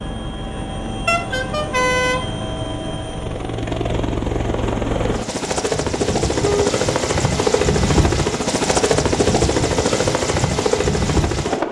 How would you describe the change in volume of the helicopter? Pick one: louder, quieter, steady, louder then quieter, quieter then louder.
louder.